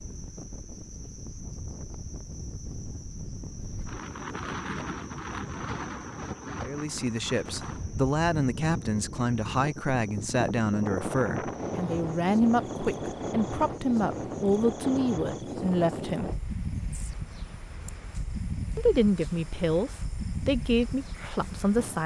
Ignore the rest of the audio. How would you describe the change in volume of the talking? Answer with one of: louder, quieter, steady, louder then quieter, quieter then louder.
steady.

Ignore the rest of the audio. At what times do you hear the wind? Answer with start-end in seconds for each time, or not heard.
0.0-22.0.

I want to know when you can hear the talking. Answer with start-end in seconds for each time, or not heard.
6.6-16.3, 18.8-22.0.